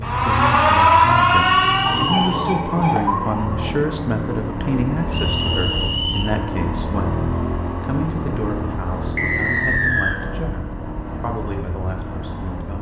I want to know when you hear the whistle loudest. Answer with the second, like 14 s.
10 s.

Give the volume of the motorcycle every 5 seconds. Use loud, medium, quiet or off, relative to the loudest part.
loud, loud, medium.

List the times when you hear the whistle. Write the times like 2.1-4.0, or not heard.
1.2-2.4, 5.1-6.3, 9.2-10.2.